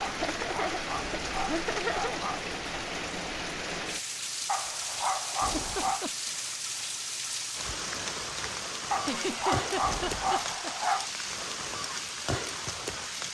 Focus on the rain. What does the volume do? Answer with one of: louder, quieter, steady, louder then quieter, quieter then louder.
steady.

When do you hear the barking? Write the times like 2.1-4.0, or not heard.
0.0-2.5, 4.5-6.0, 8.9-11.1.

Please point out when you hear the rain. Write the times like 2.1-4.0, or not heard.
0.0-13.2.